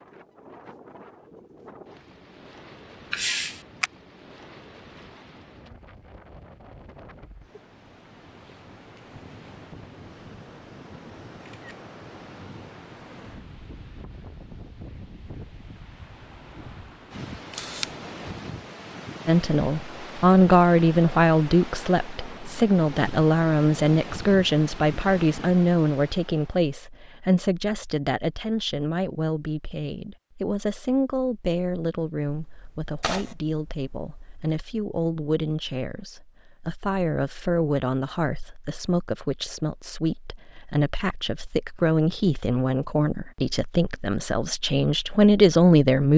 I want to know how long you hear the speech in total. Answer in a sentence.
You can hear the speech for 27 seconds altogether.